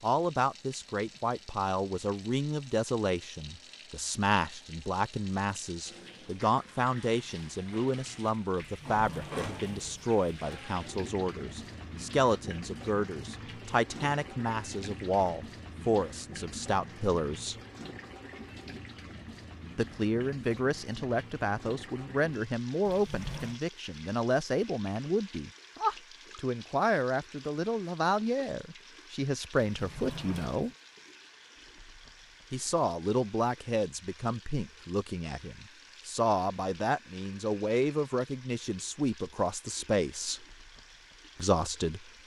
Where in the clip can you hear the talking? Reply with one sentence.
The talking can be heard from 0.0 to 17.6 s, from 19.8 to 30.7 s, from 32.5 to 40.5 s and from 41.4 to 42.0 s.